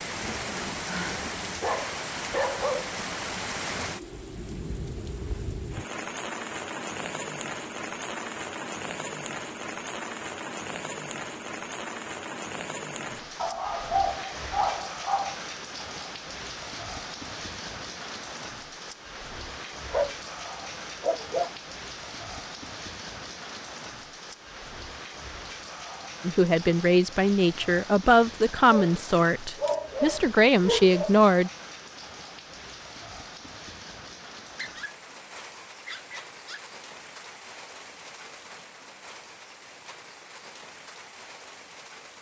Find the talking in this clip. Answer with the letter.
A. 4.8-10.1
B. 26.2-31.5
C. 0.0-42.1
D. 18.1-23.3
B.